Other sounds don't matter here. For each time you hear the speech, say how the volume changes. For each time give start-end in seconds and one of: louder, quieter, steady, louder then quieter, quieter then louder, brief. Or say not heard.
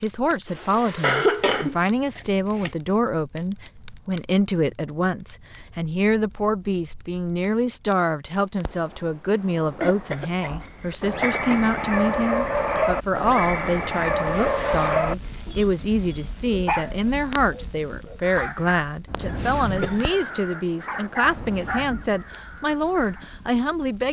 0.0-24.0 steady.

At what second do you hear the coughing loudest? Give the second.
1 s.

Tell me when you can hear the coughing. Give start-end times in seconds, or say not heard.
1.0-2.7, 9.8-11.7, 19.2-20.1.